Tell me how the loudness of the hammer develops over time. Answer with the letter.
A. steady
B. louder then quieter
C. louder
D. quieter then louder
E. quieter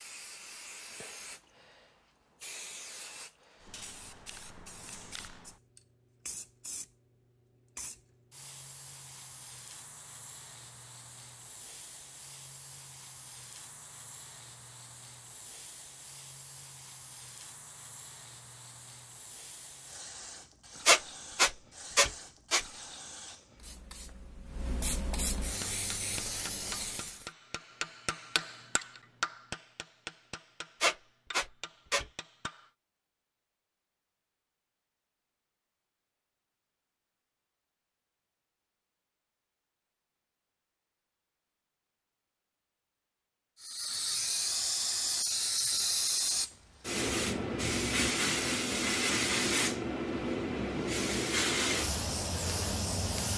B.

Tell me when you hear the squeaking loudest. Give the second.
21 s.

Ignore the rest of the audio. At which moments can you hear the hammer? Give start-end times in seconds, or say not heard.
25.6-32.7.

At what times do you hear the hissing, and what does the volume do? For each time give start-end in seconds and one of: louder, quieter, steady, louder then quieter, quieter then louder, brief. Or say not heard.
0.0-27.3 louder
43.6-53.3 steady.